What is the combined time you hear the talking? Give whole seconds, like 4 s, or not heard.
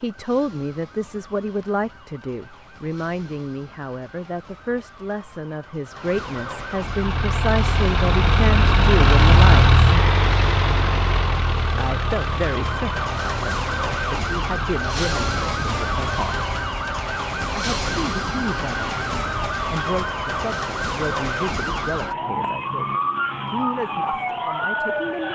22 s.